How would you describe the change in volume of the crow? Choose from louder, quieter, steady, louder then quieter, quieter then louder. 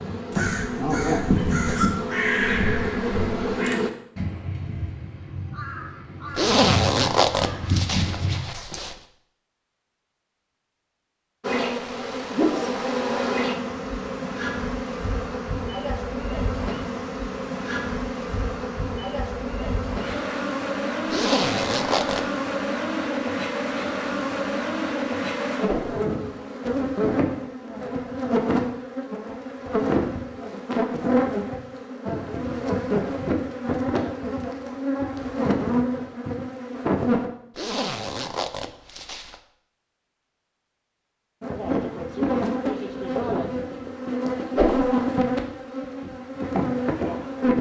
quieter then louder.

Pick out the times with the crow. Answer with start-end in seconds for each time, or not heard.
0.3-8.4.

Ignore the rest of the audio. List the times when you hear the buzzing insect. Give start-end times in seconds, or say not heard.
0.0-3.9, 11.4-37.3, 41.4-47.5.